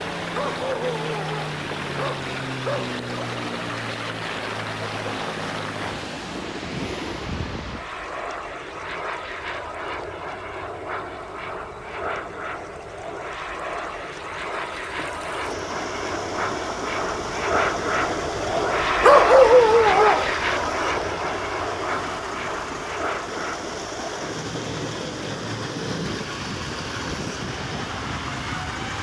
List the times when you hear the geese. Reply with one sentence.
The geese can't be heard in this clip.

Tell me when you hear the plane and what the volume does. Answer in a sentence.
The plane can be heard from 0.0 to 28.9 s, getting louder then quieter.